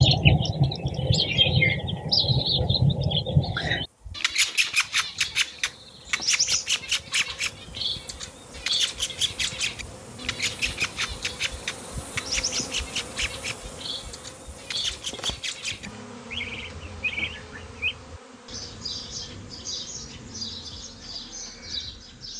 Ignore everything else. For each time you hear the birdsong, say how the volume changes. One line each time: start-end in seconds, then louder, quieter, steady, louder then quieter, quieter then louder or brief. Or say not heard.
0.0-22.3 quieter.